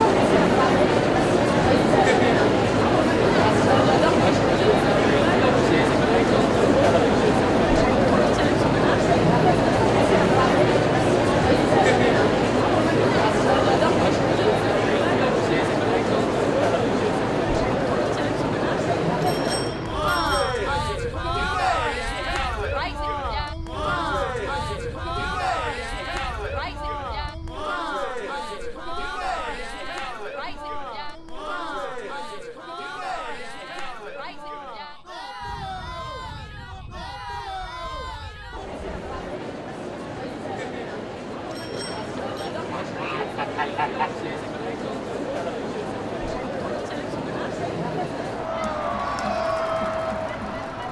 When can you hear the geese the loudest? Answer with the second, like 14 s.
44 s.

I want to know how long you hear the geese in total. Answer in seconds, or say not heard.
2 s.